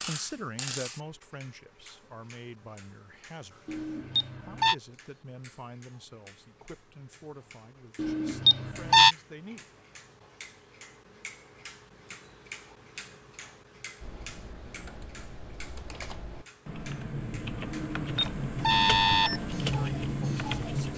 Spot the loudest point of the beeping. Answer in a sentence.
The loudest moment of the beeping is at 9 seconds.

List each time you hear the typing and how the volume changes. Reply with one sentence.
You can hear the typing from 14.0 to 20.9 s, getting louder.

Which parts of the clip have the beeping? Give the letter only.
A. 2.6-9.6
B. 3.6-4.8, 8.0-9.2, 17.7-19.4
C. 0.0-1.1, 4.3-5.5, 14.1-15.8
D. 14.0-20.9
B.